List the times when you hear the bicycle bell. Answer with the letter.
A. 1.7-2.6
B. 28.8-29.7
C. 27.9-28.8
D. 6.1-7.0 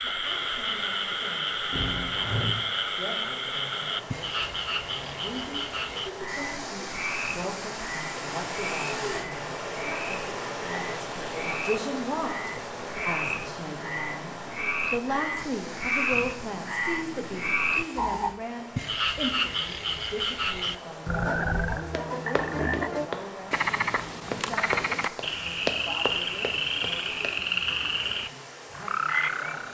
A.